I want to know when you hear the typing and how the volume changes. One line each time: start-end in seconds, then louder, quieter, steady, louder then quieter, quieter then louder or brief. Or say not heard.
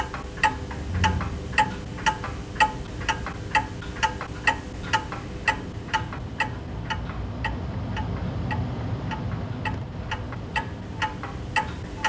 not heard.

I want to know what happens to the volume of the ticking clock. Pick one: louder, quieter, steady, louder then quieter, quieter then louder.
quieter then louder.